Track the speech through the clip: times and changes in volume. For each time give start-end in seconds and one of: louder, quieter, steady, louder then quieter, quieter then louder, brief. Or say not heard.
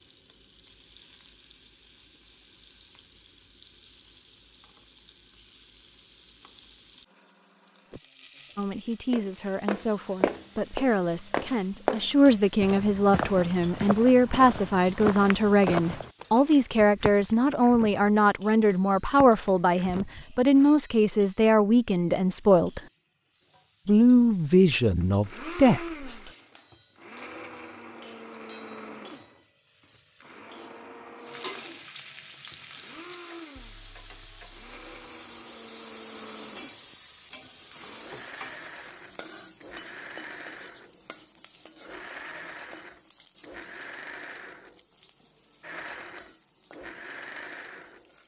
8.6-22.8 louder
23.9-26.2 brief.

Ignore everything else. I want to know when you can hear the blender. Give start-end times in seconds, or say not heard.
24.8-48.1.